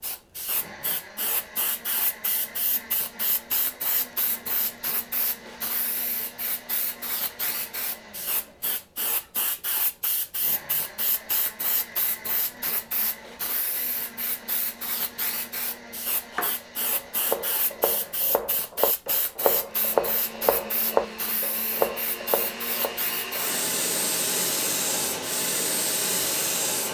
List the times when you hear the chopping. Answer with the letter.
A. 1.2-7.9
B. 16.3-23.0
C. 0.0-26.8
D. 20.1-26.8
B.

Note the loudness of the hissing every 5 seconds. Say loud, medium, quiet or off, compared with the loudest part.
medium, medium, medium, medium, loud, loud.